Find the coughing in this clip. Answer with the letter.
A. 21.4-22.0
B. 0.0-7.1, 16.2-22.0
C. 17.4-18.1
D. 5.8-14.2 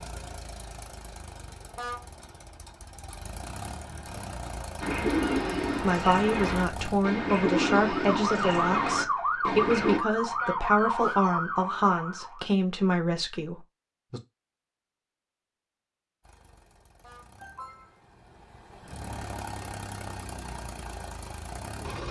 C.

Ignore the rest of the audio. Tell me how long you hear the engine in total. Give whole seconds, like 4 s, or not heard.
13 s.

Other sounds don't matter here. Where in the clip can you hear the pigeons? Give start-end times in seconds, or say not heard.
4.8-10.0.